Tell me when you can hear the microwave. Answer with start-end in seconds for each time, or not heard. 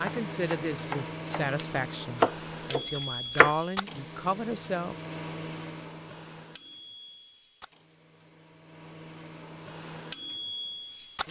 0.0-11.2.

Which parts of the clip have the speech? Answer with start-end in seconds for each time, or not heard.
0.0-5.0.